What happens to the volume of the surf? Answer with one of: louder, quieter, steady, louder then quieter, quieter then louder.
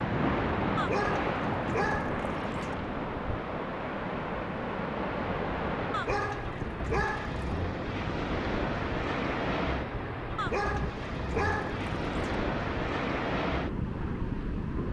steady.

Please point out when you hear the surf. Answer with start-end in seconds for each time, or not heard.
0.0-14.8.